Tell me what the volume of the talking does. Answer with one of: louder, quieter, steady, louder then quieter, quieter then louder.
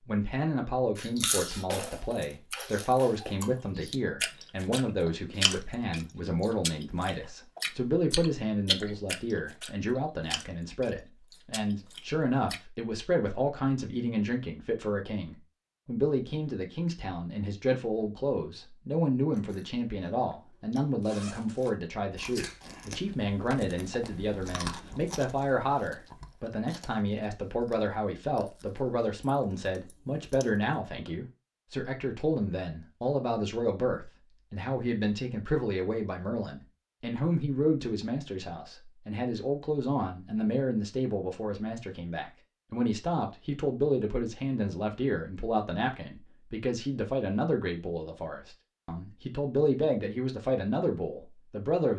steady.